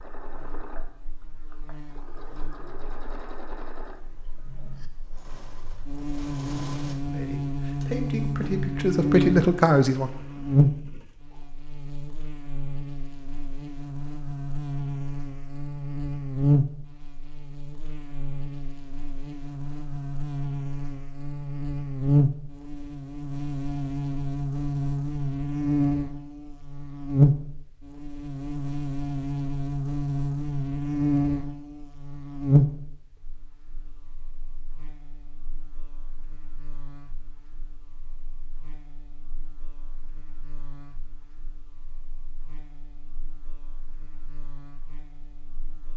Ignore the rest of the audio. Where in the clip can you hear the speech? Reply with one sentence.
You can hear the speech from 7.0 to 10.1 s.